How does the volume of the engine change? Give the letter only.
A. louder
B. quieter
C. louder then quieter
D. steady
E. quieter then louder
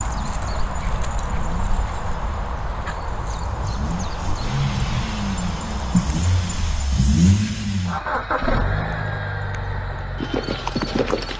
C.